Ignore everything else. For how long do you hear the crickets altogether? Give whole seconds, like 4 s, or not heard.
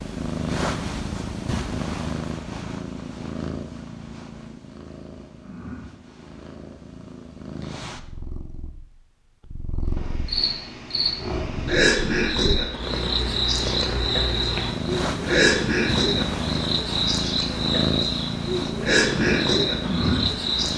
11 s.